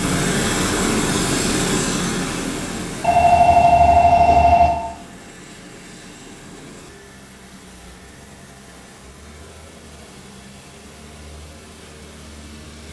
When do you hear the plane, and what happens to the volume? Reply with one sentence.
The plane can be heard from 0.0 to 12.8 s, getting quieter.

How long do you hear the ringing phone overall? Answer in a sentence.
You can hear the ringing phone for 2 seconds altogether.